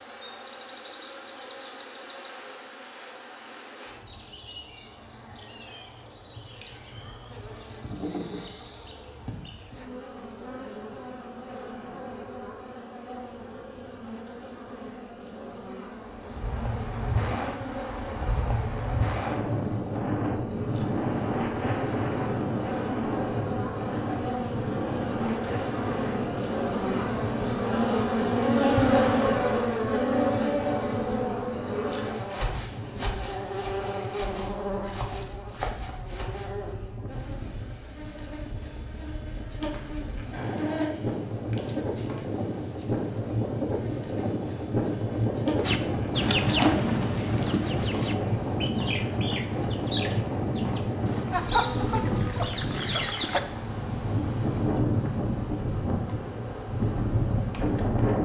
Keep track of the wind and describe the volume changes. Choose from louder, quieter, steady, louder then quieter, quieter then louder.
quieter then louder.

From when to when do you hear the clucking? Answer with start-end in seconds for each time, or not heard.
45.6-53.4.